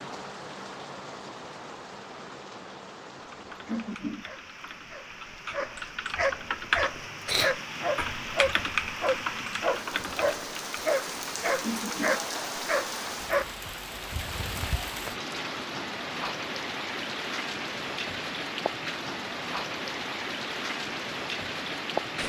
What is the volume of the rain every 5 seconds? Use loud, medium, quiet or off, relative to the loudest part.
medium, medium, loud, loud, loud.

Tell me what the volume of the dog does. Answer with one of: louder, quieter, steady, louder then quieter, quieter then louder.
louder.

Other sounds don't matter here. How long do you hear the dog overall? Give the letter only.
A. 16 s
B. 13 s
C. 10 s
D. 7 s
C.